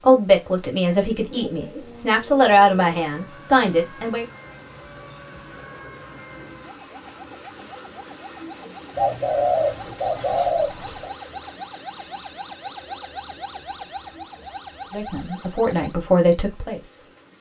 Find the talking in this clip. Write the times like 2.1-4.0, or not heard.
0.1-4.2, 14.9-17.1.